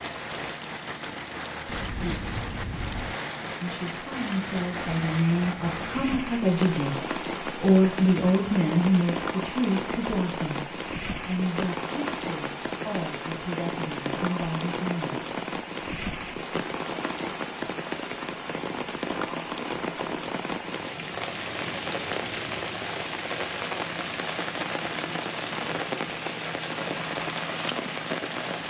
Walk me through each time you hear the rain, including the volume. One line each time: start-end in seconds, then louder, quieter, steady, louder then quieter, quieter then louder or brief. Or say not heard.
0.0-28.6 steady.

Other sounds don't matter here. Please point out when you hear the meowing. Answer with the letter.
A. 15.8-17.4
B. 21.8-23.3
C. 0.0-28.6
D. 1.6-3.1
D.